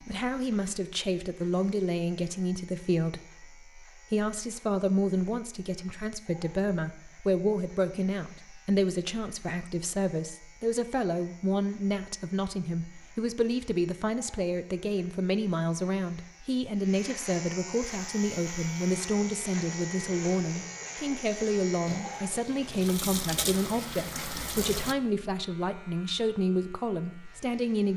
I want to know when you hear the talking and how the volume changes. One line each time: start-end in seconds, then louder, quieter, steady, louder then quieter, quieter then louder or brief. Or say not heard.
0.0-27.9 steady.